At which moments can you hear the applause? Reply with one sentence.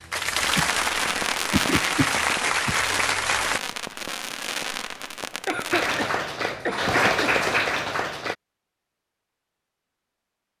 The applause can be heard from 0.0 to 3.6 s and from 5.7 to 8.3 s.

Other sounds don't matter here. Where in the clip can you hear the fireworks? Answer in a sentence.
You can hear the fireworks from 0.2 to 5.9 s.